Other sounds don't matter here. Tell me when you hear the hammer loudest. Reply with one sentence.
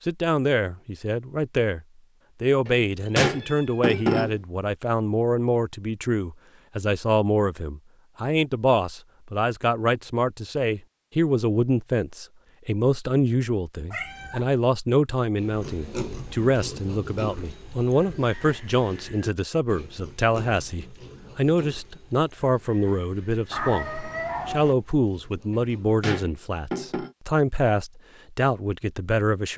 The loudest moment of the hammer is at 4 seconds.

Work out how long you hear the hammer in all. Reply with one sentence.
You can hear the hammer for 3 seconds altogether.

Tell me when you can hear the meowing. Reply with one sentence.
The meowing can be heard from 3.2 to 4.0 s, from 13.9 to 14.5 s and from 23.5 to 24.8 s.